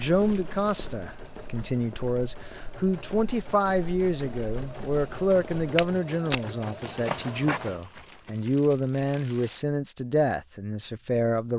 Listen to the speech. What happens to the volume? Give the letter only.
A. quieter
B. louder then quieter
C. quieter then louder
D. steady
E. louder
D.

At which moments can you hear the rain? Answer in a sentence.
You can't hear the rain here.